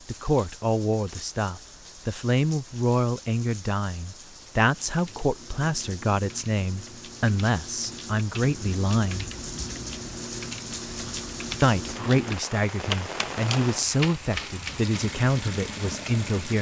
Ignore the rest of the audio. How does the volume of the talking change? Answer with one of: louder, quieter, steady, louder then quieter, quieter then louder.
steady.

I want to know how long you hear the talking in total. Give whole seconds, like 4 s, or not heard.
14 s.